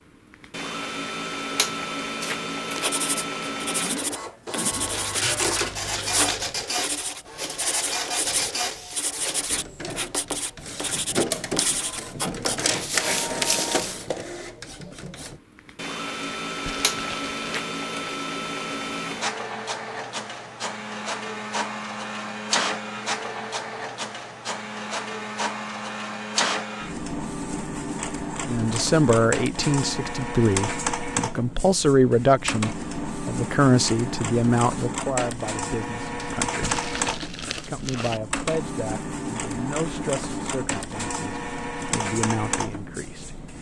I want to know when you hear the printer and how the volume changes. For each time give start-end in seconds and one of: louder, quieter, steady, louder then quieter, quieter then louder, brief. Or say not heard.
0.3-43.5 steady.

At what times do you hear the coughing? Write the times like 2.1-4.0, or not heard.
3.8-4.9.